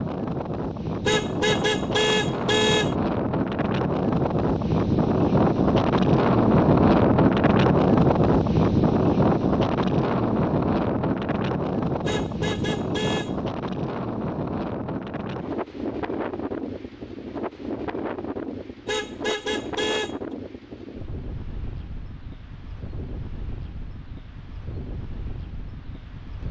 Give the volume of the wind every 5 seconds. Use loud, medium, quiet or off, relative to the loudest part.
medium, loud, medium, quiet, quiet, quiet.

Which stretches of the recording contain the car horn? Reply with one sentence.
You can hear the car horn from 1.1 to 3.0 s, from 12.1 to 13.4 s and from 18.9 to 20.1 s.